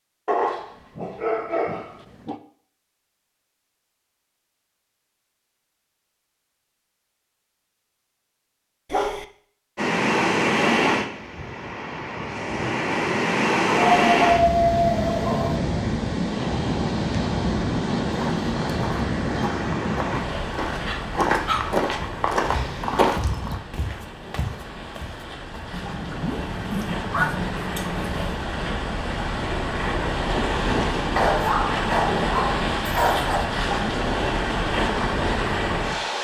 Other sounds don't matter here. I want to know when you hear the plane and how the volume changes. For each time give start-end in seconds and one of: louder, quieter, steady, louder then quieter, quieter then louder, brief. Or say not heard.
not heard.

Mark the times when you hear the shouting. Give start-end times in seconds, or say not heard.
not heard.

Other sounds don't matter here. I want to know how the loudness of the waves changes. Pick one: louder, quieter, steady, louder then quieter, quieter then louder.
quieter then louder.